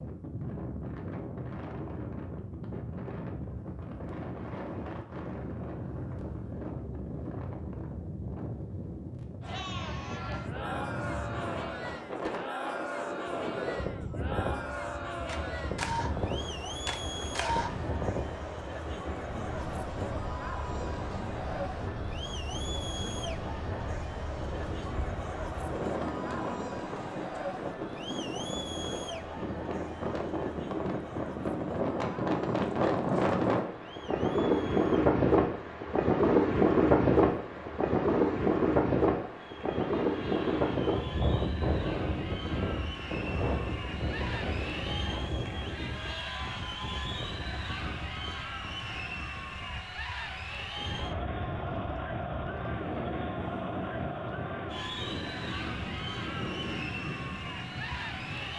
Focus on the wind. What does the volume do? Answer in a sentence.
The loudness of the wind goes up, then down.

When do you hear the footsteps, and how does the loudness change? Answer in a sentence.
You can't hear the footsteps here.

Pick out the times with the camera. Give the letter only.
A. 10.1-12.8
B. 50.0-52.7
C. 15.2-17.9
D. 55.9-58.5
C.